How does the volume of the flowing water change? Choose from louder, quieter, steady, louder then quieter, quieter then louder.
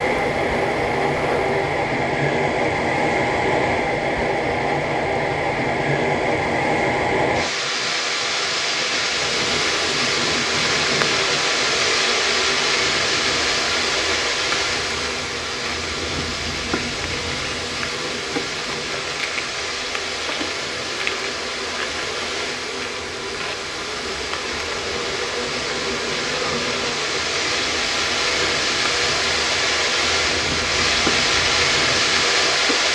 quieter then louder.